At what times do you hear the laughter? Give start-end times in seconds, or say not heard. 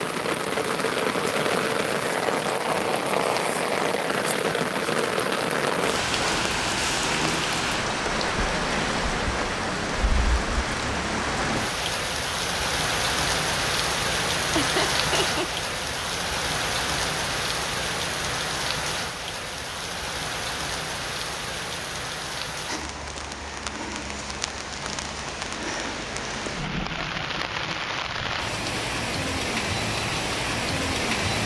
14.5-15.5.